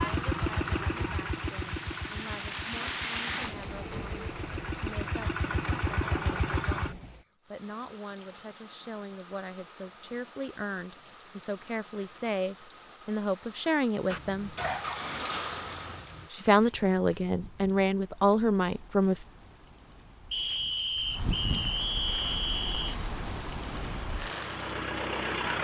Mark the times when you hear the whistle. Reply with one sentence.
You can hear the whistle from 20.3 to 22.9 s.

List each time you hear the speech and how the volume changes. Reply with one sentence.
You can hear the speech from 0.0 to 14.6 s, getting louder; and briefly from 16.3 to 19.2 s.